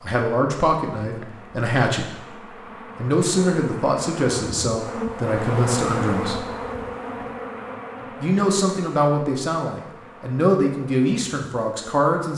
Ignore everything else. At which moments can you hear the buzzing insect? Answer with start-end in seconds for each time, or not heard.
0.0-12.1.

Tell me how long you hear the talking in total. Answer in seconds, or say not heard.
10 s.